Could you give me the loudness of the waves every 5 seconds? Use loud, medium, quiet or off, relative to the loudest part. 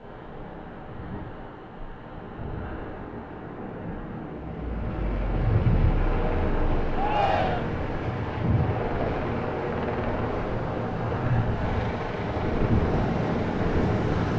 medium, medium, loud.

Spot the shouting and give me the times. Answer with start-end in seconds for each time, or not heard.
6.9-7.7.